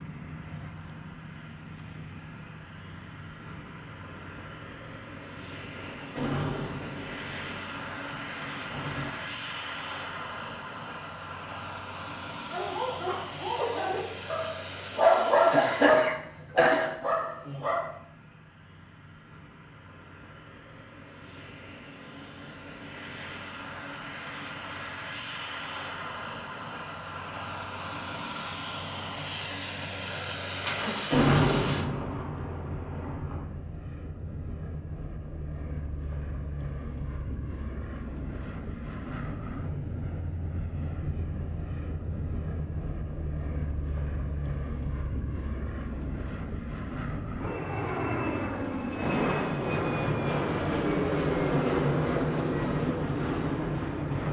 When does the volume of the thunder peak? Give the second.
31 s.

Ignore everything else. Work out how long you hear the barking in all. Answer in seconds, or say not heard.
5 s.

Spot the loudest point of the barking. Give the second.
15 s.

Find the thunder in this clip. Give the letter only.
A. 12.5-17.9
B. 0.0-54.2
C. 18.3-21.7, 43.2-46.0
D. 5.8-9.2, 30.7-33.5
D.